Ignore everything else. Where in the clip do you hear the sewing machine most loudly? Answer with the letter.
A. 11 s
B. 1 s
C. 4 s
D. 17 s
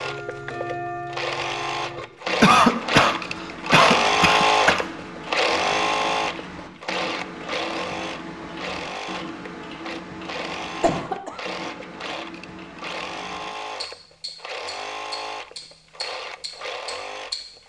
C.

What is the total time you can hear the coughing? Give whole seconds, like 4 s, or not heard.
3 s.